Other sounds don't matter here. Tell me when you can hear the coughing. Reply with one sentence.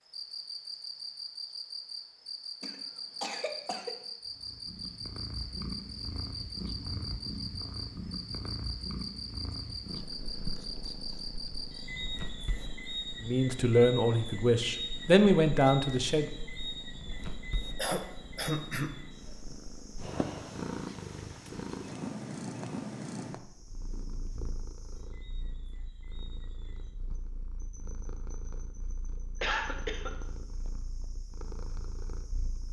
You can hear the coughing from 2.6 to 3.9 s, from 17.8 to 18.9 s and from 29.4 to 30.1 s.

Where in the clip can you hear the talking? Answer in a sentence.
You can hear the talking from 13.2 to 16.3 s.